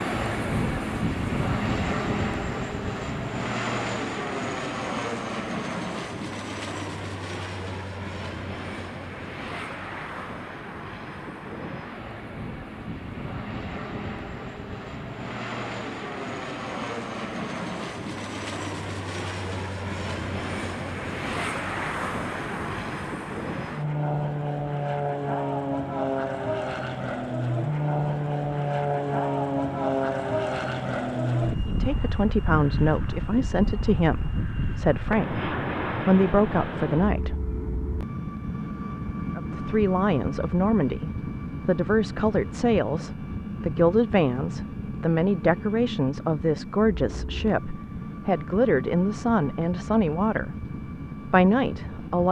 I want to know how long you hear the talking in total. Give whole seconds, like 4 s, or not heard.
18 s.